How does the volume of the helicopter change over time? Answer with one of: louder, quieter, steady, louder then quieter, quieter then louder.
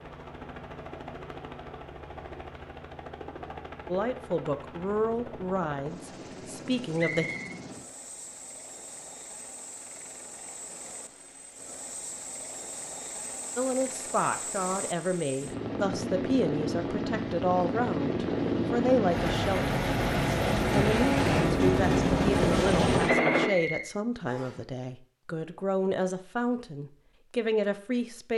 louder.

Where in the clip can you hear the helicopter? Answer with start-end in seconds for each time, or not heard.
0.0-23.5.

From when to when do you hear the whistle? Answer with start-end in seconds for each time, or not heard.
7.0-7.5, 23.0-24.6.